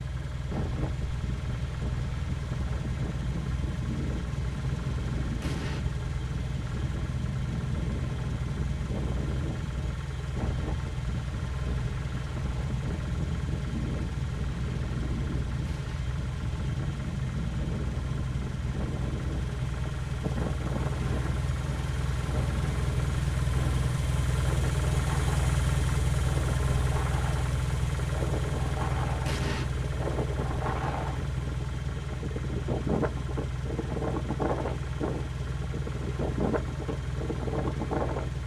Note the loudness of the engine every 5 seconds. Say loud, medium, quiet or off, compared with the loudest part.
medium, medium, medium, medium, loud, loud, medium, medium.